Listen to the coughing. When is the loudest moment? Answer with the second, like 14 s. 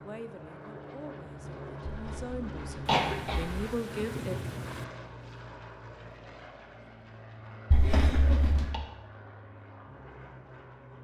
3 s.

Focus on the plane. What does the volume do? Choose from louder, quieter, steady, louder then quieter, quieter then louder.
quieter.